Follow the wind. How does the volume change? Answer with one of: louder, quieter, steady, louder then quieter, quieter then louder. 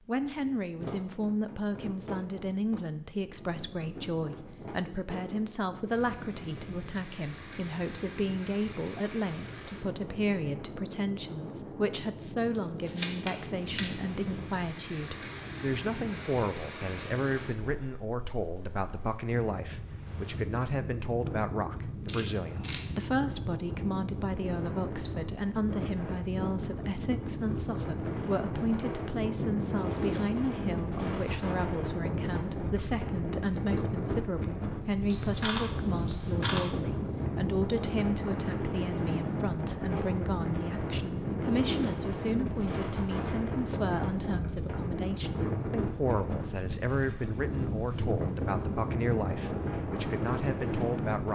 louder.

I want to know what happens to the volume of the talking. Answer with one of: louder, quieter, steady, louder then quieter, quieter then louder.
steady.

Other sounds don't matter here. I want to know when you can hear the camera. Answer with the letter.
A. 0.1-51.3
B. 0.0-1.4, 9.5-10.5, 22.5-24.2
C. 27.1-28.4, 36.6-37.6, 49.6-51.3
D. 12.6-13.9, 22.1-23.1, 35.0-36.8
D.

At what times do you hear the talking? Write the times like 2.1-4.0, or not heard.
0.1-51.3.